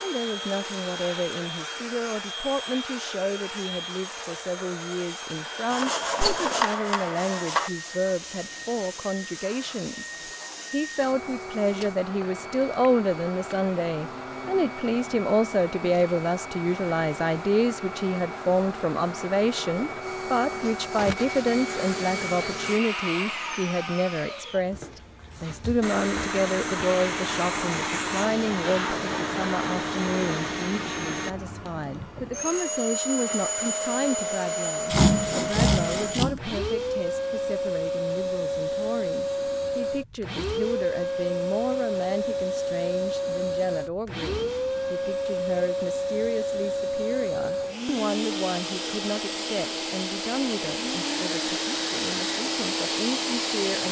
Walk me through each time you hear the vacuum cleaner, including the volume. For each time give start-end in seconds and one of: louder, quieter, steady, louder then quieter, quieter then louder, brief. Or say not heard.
0.0-53.8 louder.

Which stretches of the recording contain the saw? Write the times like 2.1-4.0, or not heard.
5.7-7.7, 34.9-36.4.